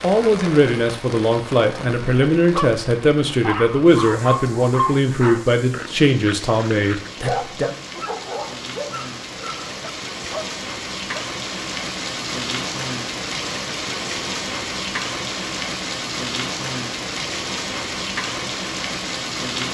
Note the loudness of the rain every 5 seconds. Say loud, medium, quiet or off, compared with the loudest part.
medium, medium, loud, loud.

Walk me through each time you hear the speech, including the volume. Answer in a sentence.
You can hear the speech from 0.0 to 7.8 s, at a steady volume.